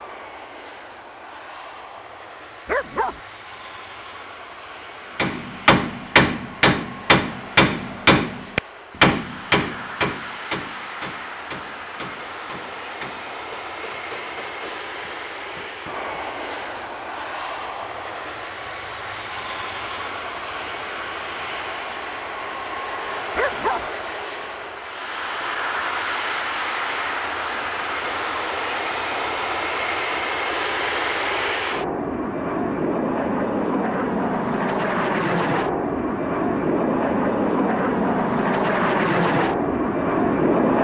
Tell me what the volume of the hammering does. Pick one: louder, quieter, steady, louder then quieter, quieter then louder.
quieter.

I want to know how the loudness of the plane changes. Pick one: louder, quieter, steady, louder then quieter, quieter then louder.
louder.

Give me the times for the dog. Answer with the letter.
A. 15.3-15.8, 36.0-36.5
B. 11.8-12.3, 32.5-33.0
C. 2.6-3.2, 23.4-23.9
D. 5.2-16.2
C.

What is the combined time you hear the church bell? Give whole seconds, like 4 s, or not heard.
not heard.